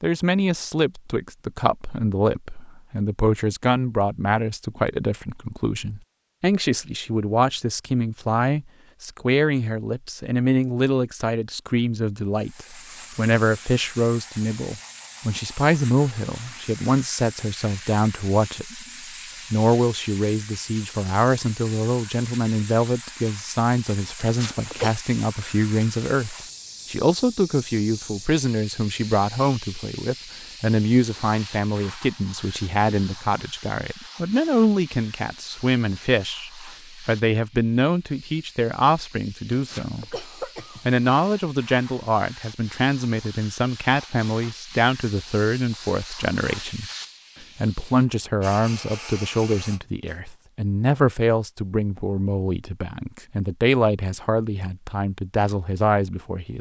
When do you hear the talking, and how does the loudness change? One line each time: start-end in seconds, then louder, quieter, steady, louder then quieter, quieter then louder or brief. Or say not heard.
0.0-18.9 steady
19.5-40.2 steady
40.9-46.9 steady
47.5-56.5 steady.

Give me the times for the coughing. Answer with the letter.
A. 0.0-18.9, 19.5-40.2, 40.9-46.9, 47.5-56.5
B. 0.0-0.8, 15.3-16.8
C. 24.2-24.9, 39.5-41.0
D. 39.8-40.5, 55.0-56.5
C.